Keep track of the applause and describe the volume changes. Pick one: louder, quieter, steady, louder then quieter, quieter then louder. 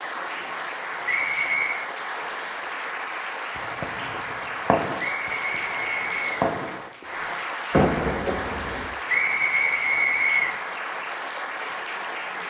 steady.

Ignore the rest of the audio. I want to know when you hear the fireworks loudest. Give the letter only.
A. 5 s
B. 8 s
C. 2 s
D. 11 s
B.